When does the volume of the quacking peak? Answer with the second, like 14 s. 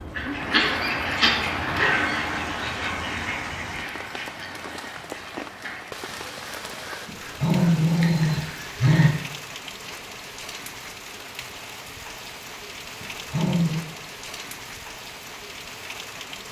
1 s.